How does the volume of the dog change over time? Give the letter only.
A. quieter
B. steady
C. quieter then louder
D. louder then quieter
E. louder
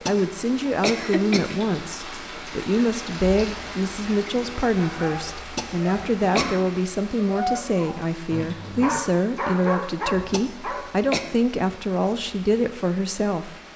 E.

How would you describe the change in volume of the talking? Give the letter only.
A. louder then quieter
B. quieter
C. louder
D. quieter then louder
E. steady
E.